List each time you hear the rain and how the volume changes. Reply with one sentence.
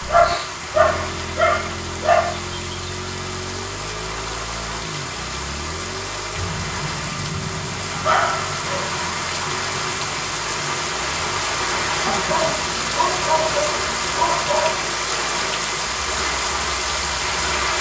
You can hear the rain from 0.0 to 17.7 s, getting louder.